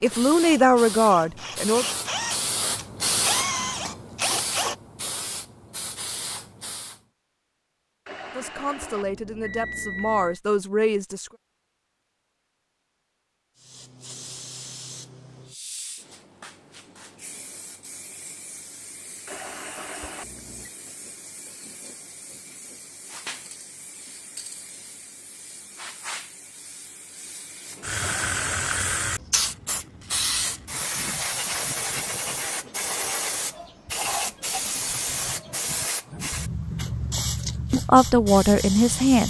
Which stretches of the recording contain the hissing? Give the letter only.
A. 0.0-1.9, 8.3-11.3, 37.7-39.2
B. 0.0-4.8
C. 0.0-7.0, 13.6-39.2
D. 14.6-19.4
C.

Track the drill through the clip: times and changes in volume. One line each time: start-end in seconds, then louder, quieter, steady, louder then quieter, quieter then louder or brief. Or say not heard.
0.0-4.8 louder.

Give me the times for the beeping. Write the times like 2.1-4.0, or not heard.
8.1-10.4, 19.2-20.7, 28.0-28.8.